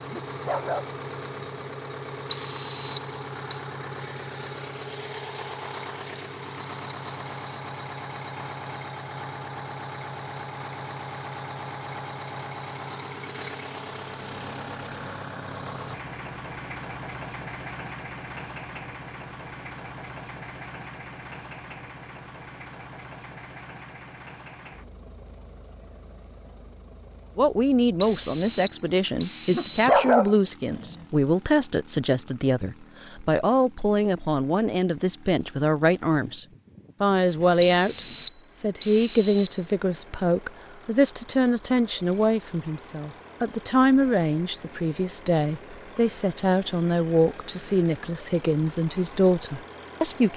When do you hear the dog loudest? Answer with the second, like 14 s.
30 s.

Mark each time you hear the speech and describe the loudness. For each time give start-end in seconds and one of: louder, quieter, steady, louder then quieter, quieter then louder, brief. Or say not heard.
27.4-50.3 steady.